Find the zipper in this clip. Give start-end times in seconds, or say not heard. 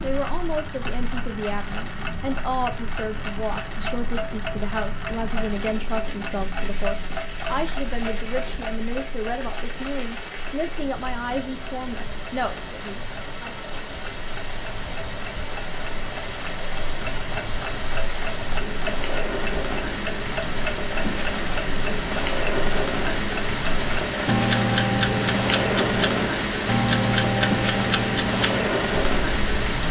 not heard.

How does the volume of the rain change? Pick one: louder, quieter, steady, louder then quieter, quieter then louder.
louder.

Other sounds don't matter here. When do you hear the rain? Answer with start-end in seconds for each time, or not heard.
0.0-29.8.